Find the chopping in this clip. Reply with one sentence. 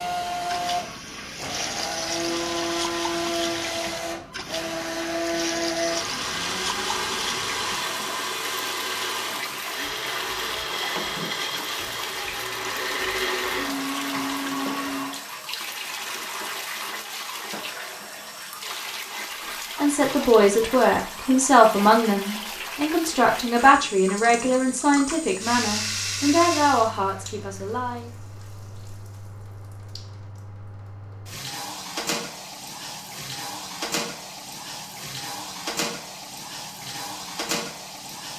You can't hear the chopping here.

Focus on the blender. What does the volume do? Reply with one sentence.
The volume of the blender stays about the same.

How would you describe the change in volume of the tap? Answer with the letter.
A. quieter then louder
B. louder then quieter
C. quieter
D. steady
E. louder
D.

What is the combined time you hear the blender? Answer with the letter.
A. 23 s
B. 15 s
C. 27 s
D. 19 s
B.